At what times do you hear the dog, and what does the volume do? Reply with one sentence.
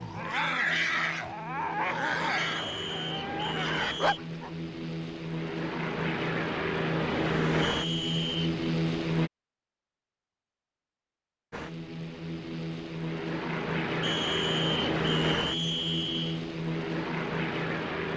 You can hear the dog from 0.0 to 4.5 s, getting quieter then louder.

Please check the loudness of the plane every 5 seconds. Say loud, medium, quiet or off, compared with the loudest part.
medium, loud, loud, loud.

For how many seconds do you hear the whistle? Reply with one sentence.
The whistle can be heard for 5 seconds in total.